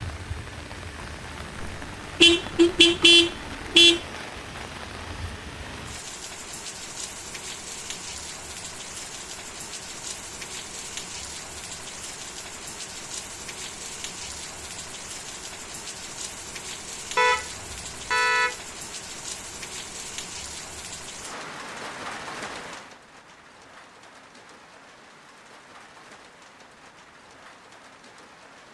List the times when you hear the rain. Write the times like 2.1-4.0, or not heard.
0.0-28.7.